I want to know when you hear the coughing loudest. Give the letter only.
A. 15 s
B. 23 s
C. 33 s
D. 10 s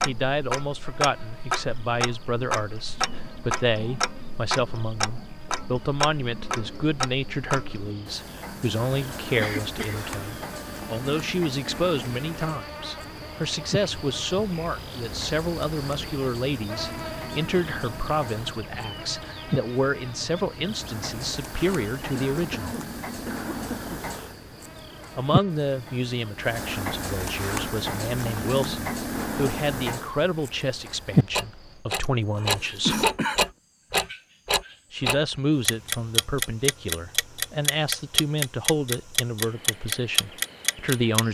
C.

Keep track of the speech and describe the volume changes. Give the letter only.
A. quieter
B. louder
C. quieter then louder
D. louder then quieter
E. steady
E.